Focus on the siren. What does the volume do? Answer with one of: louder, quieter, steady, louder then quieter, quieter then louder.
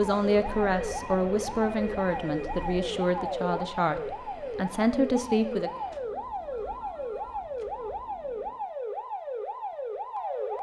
steady.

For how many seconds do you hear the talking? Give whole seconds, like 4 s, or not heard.
6 s.